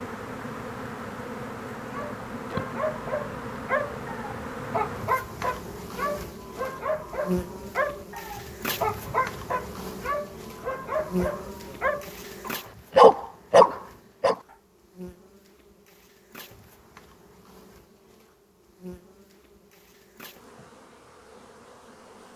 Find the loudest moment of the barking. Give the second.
13 s.